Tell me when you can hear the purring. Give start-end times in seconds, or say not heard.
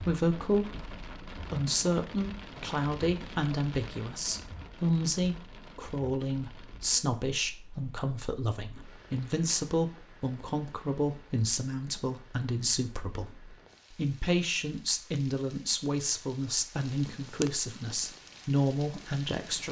16.8-19.6.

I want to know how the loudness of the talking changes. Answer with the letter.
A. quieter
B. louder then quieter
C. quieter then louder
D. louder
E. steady
E.